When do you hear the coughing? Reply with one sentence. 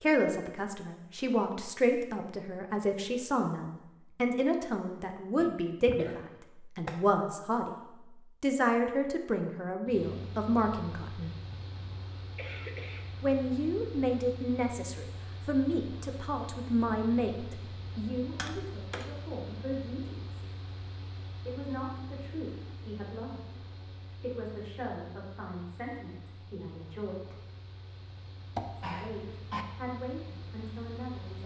You can hear the coughing from 5.4 to 6.3 s, from 11.5 to 13.2 s and from 28.8 to 29.6 s.